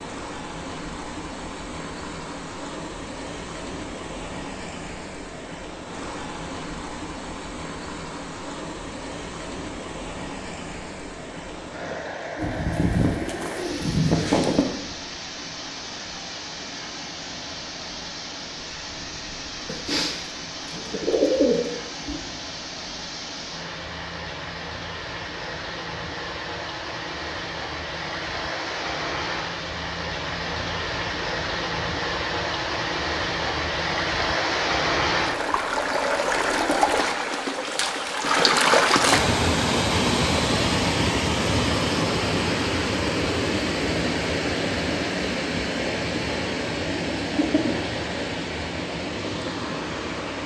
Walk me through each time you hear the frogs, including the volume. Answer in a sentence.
You can't hear the frogs here.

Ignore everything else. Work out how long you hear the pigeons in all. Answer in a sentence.
The pigeons can be heard for 6 seconds in total.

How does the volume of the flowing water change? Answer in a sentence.
The volume of the flowing water goes up.